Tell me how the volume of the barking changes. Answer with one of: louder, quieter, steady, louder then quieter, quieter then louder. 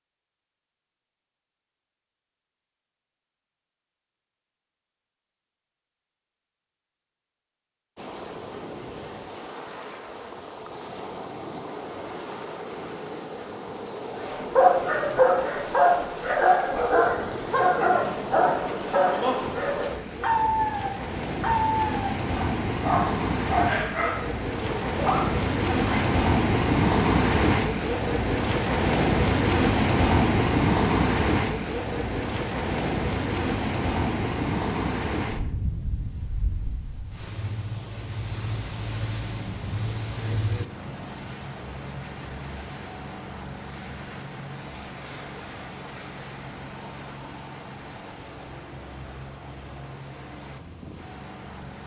quieter.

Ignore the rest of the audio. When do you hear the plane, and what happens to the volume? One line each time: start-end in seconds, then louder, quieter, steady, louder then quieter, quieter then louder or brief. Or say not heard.
not heard.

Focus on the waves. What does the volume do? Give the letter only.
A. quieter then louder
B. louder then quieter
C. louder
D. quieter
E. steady
B.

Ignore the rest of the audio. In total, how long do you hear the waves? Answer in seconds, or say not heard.
44 s.